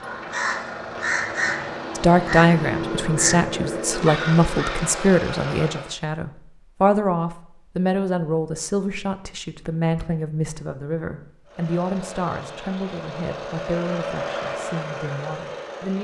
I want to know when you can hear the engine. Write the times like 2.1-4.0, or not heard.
0.0-6.0, 11.4-16.0.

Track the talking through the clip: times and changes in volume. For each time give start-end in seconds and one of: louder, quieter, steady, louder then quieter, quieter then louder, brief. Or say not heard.
1.9-16.0 quieter.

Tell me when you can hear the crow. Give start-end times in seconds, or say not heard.
0.0-5.0.